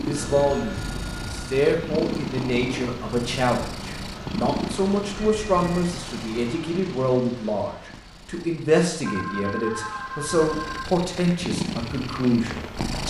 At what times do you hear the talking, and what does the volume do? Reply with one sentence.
You can hear the talking from 0.0 to 13.0 s, at a steady volume.